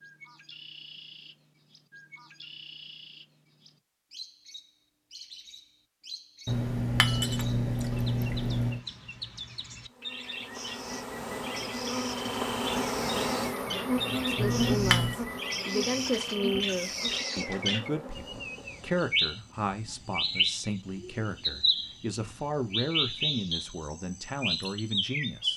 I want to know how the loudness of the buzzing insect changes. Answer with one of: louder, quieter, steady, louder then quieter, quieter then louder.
louder then quieter.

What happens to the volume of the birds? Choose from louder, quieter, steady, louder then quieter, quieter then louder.
louder.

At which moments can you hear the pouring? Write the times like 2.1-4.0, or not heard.
6.5-8.8, 14.3-15.2.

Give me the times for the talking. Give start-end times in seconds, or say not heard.
14.1-25.5.